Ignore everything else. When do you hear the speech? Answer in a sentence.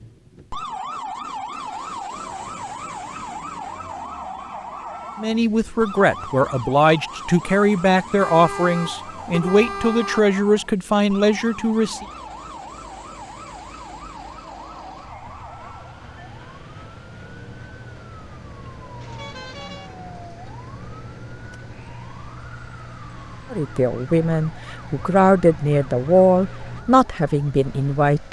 The speech can be heard from 5.2 to 12.1 s and from 23.5 to 28.2 s.